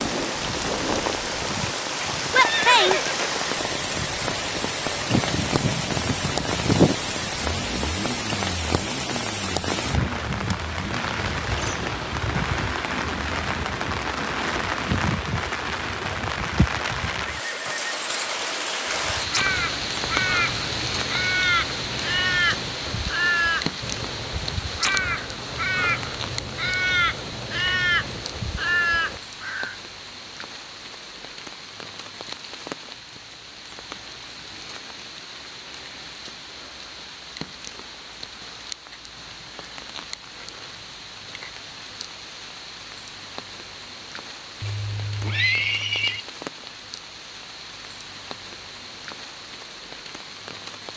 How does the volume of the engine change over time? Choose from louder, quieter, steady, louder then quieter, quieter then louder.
louder then quieter.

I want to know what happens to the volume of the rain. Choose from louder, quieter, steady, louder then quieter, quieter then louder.
quieter.